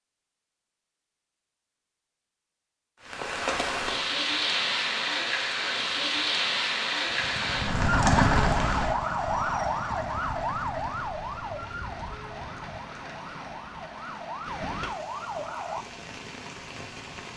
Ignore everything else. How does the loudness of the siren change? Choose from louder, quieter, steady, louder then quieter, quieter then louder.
quieter then louder.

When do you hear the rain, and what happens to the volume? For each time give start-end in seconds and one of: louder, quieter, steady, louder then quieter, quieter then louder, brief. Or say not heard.
3.0-17.3 quieter.